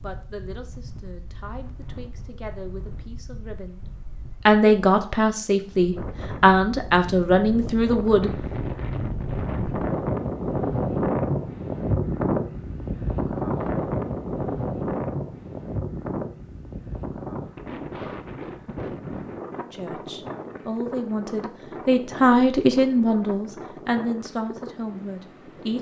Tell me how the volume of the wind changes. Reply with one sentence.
The loudness of the wind goes up, then down.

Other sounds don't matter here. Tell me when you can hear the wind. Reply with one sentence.
The wind can be heard from 0.0 to 25.7 s.